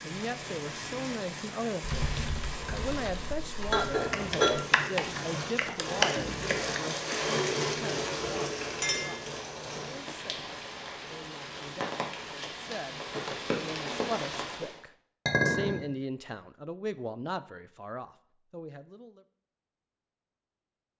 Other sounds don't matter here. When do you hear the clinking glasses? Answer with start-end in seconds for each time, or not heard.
3.7-4.6, 8.8-9.3, 15.2-15.8.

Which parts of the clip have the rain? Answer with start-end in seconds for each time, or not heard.
0.0-14.8.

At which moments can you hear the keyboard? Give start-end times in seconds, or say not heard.
1.8-7.2.